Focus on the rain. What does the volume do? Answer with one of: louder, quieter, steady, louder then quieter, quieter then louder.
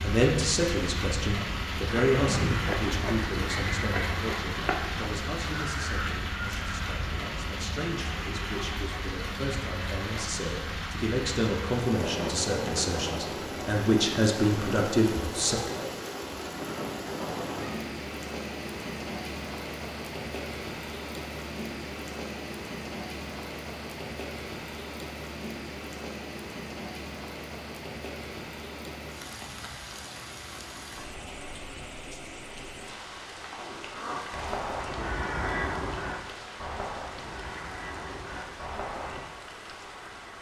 quieter.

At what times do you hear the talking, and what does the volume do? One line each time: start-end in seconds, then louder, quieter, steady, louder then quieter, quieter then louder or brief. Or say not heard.
0.0-15.6 quieter then louder.